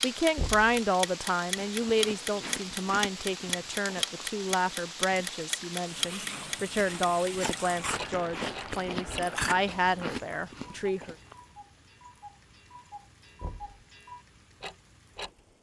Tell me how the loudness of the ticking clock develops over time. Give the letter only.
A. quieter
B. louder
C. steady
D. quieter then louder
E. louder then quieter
D.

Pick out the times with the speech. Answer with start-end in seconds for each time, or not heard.
0.0-11.2.